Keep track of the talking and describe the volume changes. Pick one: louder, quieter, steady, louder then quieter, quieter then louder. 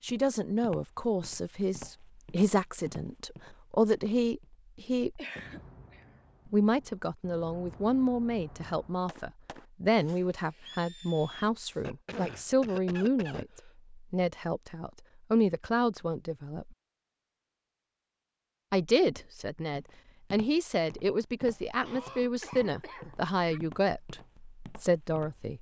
steady.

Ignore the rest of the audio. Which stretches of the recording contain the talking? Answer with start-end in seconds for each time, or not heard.
0.0-5.2, 6.5-16.8, 18.7-25.5.